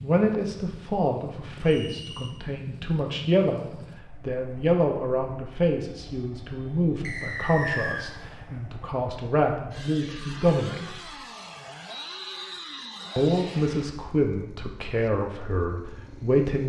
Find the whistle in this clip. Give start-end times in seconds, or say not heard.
1.6-2.3, 7.0-8.1, 11.8-13.8.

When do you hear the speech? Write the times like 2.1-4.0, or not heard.
0.0-11.1, 13.2-16.6.